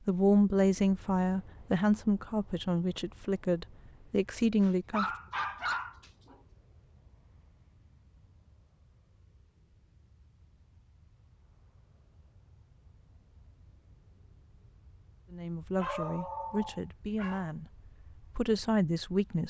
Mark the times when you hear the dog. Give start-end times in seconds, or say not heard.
4.6-6.3, 15.8-17.5.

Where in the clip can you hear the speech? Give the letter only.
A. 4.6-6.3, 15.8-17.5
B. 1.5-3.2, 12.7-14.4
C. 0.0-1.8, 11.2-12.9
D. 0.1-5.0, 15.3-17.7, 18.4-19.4
D.